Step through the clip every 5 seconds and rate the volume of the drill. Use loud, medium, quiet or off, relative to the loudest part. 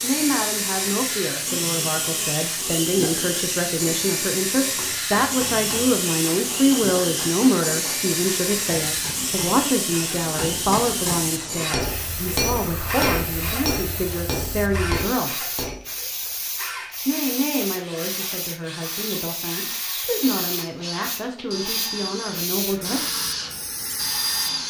loud, loud, loud, medium, loud.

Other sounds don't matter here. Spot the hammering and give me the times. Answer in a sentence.
You can hear the hammering from 4.7 to 15.9 s.